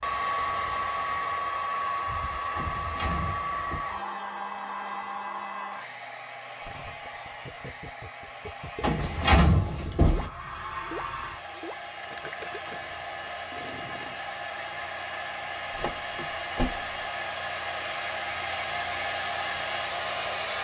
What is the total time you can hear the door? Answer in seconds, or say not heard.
4 s.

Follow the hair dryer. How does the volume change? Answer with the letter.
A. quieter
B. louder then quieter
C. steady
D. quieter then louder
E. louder
D.